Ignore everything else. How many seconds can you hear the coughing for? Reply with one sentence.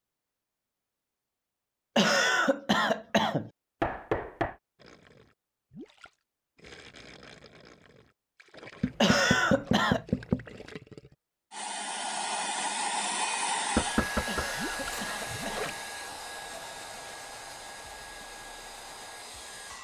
The coughing can be heard for 4 seconds in total.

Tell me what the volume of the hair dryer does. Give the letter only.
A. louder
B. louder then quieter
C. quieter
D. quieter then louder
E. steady
C.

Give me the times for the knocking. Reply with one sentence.
The knocking can be heard from 3.8 to 4.5 s, from 8.8 to 10.6 s and from 13.8 to 15.0 s.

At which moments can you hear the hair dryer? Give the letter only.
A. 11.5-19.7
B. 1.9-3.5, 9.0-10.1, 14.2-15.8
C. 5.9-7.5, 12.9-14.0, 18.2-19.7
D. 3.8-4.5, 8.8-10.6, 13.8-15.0
A.